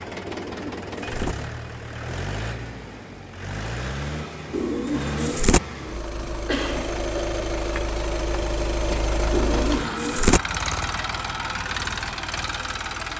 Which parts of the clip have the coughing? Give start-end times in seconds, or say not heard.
6.5-7.3.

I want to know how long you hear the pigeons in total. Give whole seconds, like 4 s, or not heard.
3 s.